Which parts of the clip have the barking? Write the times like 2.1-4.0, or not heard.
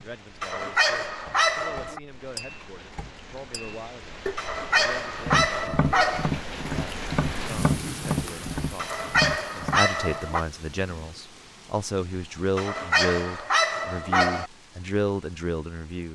0.4-2.0, 4.3-6.3, 8.8-10.4, 12.6-14.5.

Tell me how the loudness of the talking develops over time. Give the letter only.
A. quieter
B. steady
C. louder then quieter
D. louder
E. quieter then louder
D.